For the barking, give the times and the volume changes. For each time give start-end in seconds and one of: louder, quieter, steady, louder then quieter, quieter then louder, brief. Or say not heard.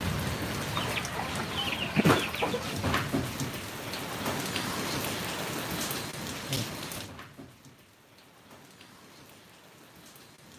not heard.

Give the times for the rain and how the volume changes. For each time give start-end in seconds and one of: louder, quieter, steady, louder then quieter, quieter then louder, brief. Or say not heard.
0.0-10.5 quieter.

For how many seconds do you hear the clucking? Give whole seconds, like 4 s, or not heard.
2 s.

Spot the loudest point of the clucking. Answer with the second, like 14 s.
2 s.